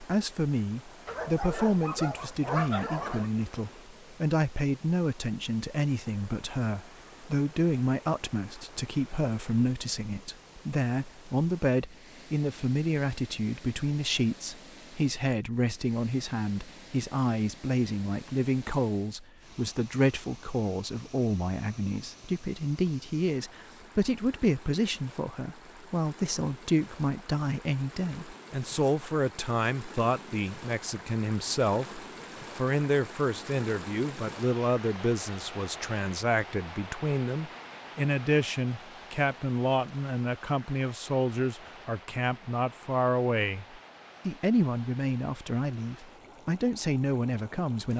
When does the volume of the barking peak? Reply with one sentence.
The volume of the barking peaks at 3 seconds.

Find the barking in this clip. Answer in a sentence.
The barking can be heard from 1.1 to 3.3 s.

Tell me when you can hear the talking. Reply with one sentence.
You can hear the talking from 0.0 to 47.9 s.